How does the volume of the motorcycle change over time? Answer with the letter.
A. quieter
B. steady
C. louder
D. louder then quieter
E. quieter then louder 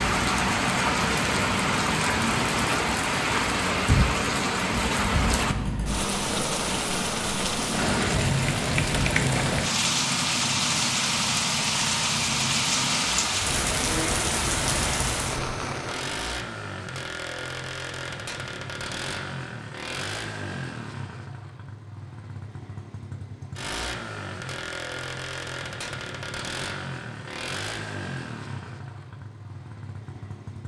B.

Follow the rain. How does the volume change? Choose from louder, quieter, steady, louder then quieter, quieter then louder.
steady.